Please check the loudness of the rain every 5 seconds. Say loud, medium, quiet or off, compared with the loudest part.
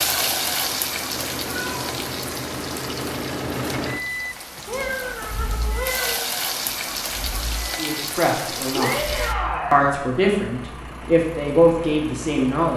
loud, loud, off.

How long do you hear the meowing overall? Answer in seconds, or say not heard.
3 s.